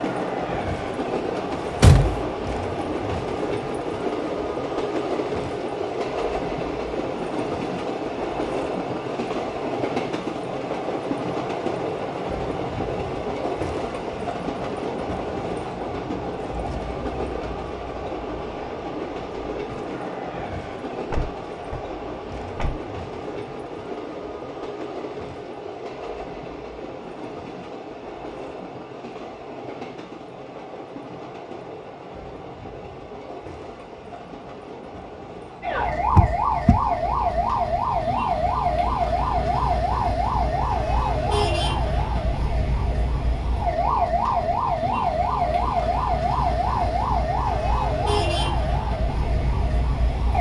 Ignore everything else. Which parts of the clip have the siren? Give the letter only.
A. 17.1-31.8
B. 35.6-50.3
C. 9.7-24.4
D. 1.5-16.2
B.